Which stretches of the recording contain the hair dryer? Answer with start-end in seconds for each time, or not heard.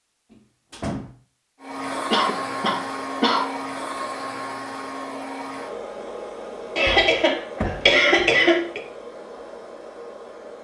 1.6-10.6.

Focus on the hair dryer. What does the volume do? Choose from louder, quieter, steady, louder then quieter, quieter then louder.
quieter.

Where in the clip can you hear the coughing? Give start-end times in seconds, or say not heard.
2.1-3.5, 6.8-8.8.